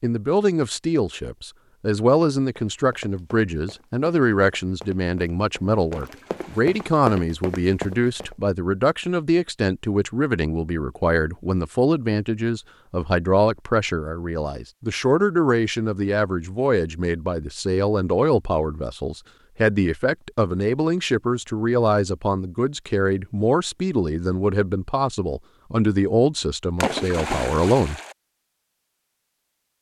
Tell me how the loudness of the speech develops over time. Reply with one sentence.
The loudness of the speech stays about the same.